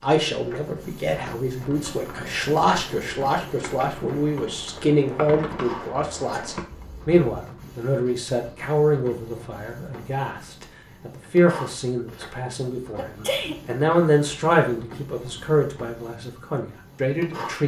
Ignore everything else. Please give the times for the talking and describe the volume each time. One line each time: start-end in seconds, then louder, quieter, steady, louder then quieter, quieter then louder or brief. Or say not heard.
0.0-17.6 steady.